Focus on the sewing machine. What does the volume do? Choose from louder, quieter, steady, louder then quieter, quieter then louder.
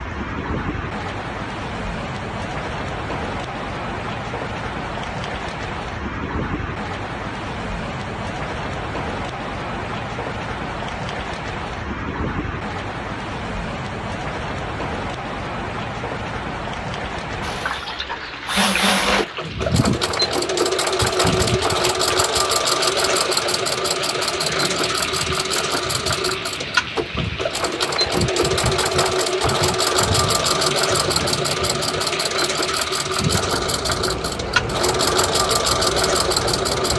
steady.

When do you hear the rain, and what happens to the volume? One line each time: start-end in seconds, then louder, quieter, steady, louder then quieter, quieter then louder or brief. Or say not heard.
0.0-36.9 steady.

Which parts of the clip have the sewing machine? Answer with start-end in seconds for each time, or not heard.
17.4-36.9.